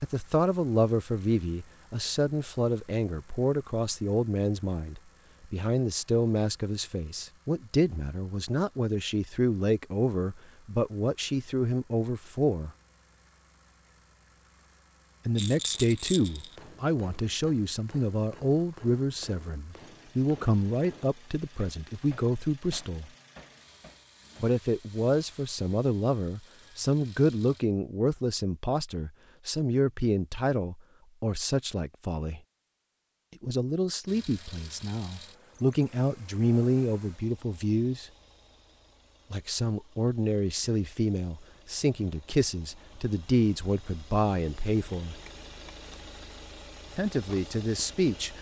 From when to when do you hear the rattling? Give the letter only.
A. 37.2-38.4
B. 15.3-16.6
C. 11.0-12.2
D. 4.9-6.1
B.